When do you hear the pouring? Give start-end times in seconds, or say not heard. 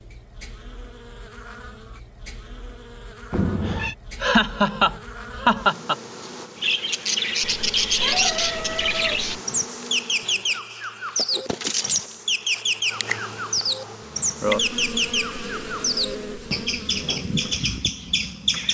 not heard.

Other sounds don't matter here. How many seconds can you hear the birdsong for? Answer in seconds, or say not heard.
12 s.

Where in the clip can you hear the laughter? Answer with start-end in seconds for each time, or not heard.
4.2-6.0.